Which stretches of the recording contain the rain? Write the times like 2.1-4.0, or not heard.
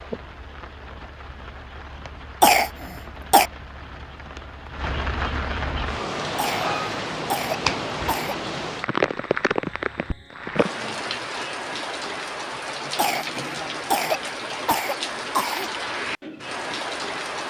0.0-17.4.